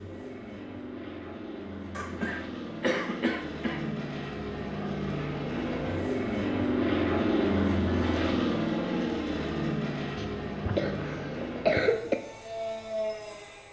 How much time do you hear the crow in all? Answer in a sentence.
The crow can't be heard in this clip.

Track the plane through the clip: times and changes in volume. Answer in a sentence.
You can hear the plane from 0.0 to 13.6 s, getting louder then quieter.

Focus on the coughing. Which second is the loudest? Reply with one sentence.
The loudest moment of the coughing is at 12 seconds.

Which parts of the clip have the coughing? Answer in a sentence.
You can hear the coughing from 1.9 to 4.0 s and from 10.2 to 12.2 s.